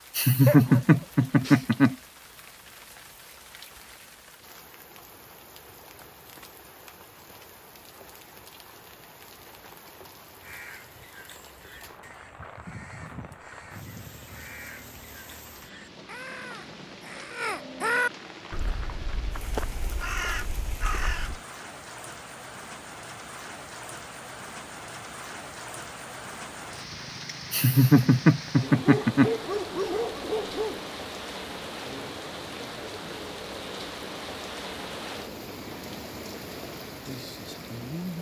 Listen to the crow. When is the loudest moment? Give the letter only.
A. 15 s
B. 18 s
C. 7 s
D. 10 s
B.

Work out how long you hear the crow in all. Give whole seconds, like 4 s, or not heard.
11 s.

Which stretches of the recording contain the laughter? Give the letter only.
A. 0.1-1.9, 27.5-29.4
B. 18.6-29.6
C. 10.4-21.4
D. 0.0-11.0
A.